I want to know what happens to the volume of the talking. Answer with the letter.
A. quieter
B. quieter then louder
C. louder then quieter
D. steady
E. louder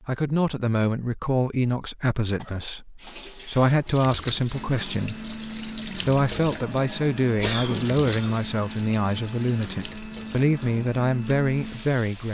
D.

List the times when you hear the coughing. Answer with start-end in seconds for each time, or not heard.
2.4-3.2, 7.4-8.4.